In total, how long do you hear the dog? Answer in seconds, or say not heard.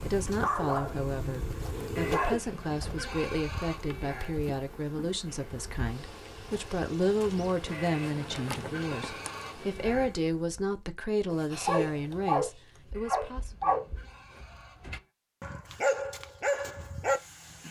9 s.